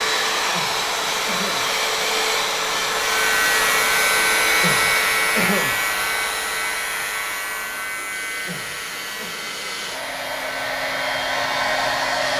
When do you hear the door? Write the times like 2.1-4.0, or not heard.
not heard.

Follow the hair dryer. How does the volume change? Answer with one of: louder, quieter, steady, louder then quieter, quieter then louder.
quieter then louder.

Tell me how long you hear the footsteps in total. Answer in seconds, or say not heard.
not heard.